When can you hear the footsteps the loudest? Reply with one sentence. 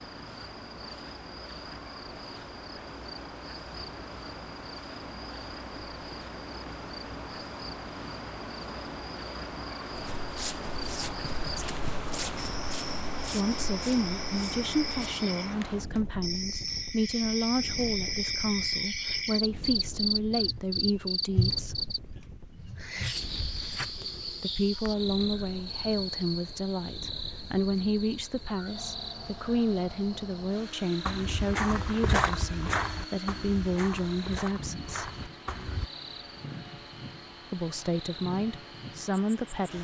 The volume of the footsteps peaks at 32 seconds.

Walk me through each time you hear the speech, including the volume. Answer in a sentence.
You can hear the speech from 13.3 to 21.9 s, at a steady volume; from 24.4 to 35.1 s, at a steady volume; and briefly from 37.5 to 39.7 s.